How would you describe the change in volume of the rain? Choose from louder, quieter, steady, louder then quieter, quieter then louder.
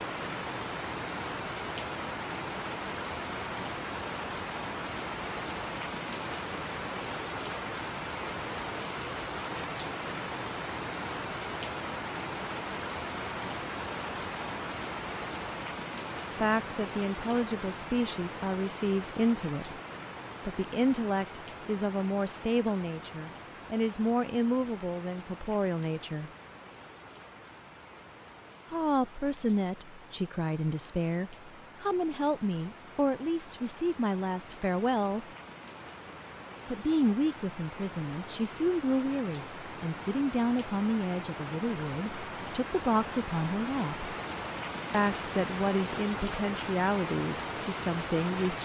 quieter then louder.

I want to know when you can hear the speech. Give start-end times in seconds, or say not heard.
16.3-19.8, 20.4-26.3, 28.7-35.2, 36.6-44.1, 44.9-48.6.